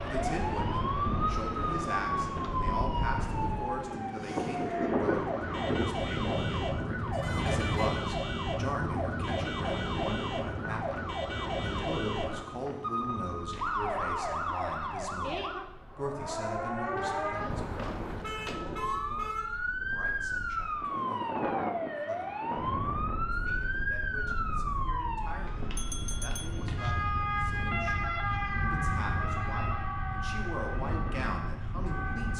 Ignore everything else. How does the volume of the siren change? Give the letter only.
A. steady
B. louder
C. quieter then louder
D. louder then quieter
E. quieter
A.